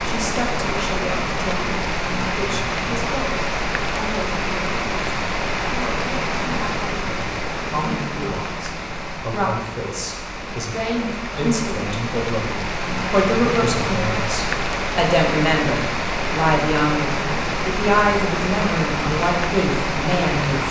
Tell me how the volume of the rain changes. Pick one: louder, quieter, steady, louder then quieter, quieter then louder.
quieter then louder.